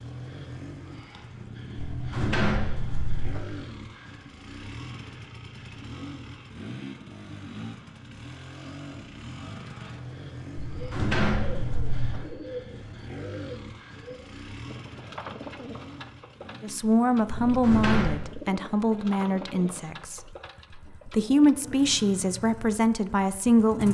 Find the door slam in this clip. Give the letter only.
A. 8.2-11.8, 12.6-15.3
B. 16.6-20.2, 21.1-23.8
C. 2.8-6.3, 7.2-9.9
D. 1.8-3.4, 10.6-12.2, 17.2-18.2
D.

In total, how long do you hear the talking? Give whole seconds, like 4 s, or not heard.
6 s.